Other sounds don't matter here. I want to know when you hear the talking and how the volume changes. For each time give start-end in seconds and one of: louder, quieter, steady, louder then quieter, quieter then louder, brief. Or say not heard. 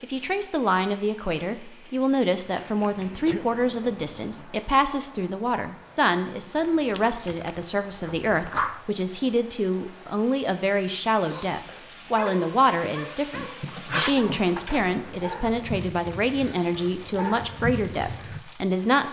0.0-19.0 steady.